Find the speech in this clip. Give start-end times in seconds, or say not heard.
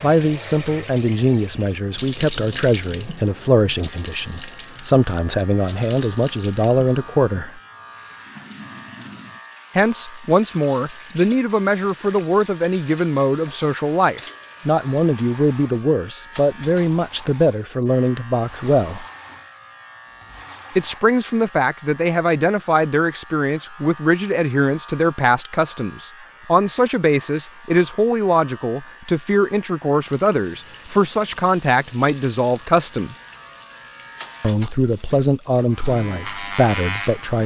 0.0-7.6, 9.8-19.1, 20.8-33.1, 34.4-37.4.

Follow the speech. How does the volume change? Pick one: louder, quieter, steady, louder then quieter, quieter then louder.
steady.